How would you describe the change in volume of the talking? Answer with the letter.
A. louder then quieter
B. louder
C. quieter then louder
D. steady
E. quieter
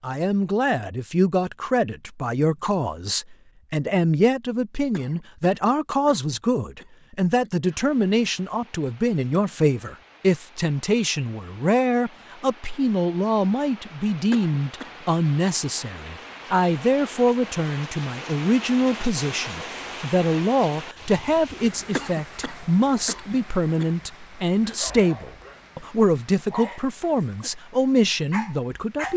D.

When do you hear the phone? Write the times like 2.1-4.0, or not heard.
not heard.